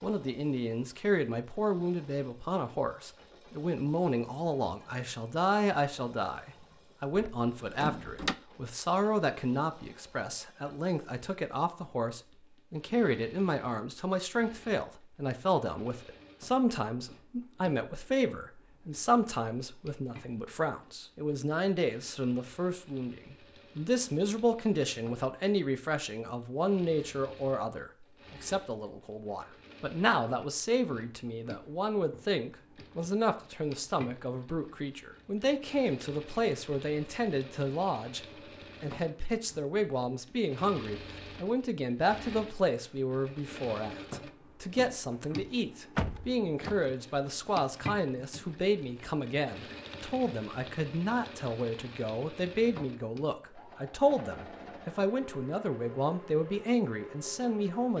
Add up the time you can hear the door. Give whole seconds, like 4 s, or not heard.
2 s.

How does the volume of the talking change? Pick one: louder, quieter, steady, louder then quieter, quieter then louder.
steady.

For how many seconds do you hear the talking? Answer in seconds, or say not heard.
57 s.